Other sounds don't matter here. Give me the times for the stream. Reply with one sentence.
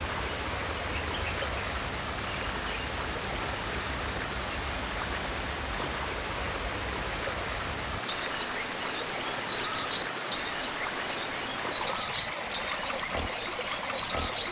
The stream can be heard from 0.0 to 14.4 s.